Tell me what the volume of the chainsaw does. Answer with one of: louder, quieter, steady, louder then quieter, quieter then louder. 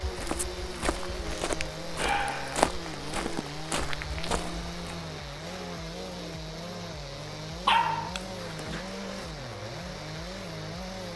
steady.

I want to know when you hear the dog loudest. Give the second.
8 s.